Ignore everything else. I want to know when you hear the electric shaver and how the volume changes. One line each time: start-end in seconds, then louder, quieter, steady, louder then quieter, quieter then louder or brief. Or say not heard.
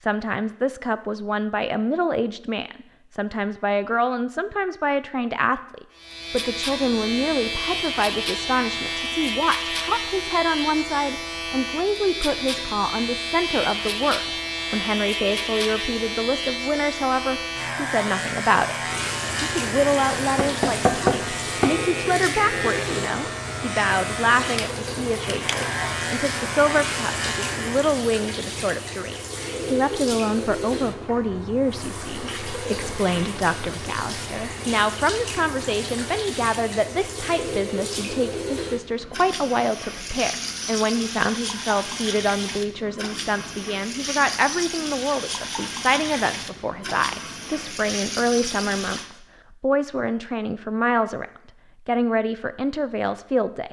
6.0-27.9 steady.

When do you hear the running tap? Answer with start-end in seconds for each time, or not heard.
18.8-49.1.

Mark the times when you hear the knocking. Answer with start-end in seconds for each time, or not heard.
20.2-21.8.